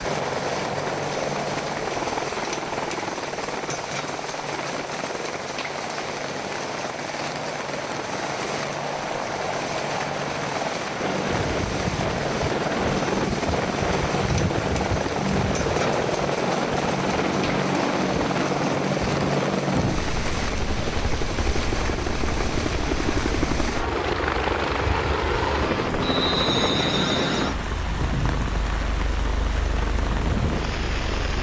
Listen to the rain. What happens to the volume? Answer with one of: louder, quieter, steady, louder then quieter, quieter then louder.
steady.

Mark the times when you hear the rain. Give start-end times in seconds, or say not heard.
0.0-31.3.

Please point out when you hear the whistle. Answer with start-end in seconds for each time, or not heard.
26.0-27.3.